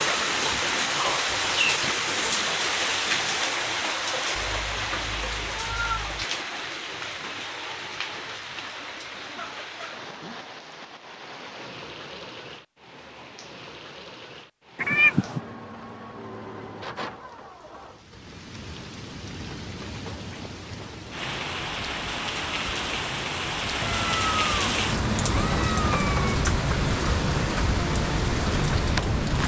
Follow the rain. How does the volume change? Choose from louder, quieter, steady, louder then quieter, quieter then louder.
quieter then louder.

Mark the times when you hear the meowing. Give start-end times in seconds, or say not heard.
4.3-6.2, 14.8-15.4, 23.8-26.4.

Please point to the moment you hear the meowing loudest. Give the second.
15 s.